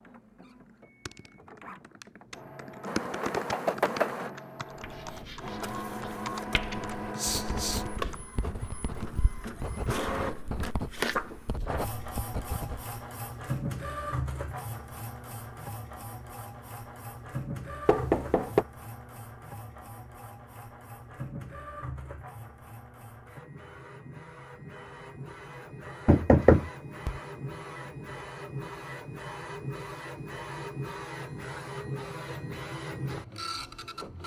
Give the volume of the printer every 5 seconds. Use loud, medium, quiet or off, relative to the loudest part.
medium, loud, loud, medium, medium, medium, loud.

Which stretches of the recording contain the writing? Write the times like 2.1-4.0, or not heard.
4.8-12.9.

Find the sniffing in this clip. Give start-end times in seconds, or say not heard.
7.2-7.8.